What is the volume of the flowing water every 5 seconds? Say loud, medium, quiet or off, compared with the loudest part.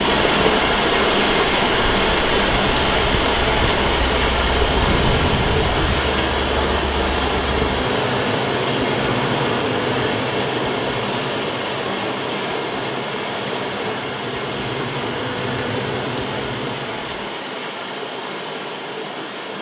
loud, loud, medium, medium.